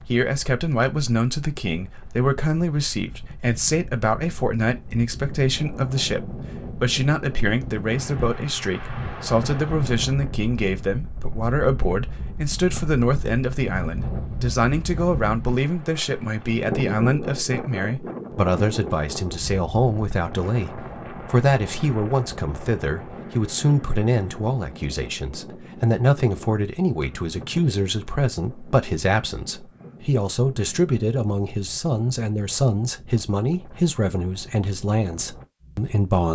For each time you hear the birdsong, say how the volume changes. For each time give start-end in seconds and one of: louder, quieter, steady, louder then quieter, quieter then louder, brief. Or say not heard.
not heard.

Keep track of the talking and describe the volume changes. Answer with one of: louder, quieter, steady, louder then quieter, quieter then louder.
steady.